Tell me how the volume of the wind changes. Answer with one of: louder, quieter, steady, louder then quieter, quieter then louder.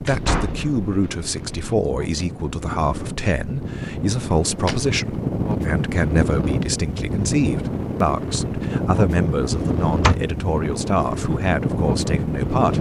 louder.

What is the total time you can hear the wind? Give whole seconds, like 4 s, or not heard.
13 s.